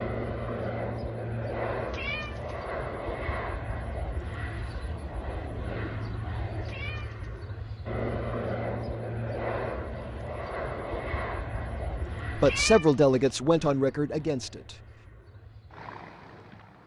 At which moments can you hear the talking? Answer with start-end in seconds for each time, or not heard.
12.3-14.8.